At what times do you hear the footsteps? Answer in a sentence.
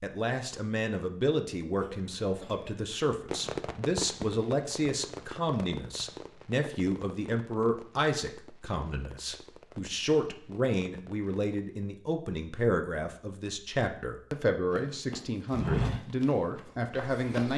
The footsteps can be heard from 14.7 to 17.5 s.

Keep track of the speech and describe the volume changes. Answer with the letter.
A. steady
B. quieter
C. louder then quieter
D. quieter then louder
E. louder
A.